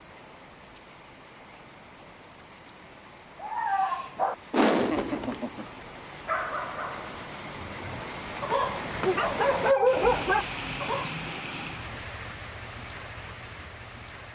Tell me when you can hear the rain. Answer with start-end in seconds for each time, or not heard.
0.0-14.3.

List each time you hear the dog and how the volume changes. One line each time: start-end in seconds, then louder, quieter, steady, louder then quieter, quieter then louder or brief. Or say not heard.
3.4-11.1 quieter then louder.